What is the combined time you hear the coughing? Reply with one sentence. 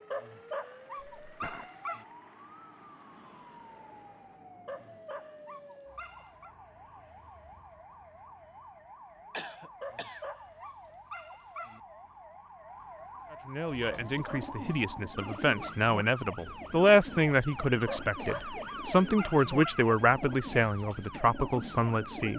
The coughing can be heard for 2 seconds in total.